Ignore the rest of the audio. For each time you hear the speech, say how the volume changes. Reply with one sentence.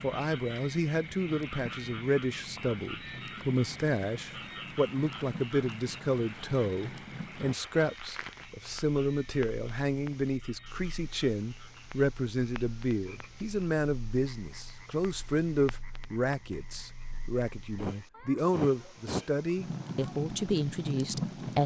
The speech can be heard from 0.0 to 21.6 s, at a steady volume.